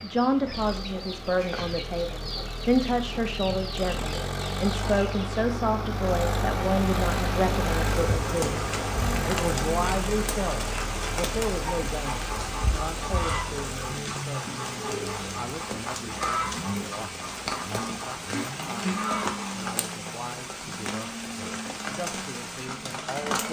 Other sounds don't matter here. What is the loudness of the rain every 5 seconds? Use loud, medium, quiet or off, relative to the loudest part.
off, loud, loud, loud, loud.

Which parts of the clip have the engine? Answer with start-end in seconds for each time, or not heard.
0.0-23.4.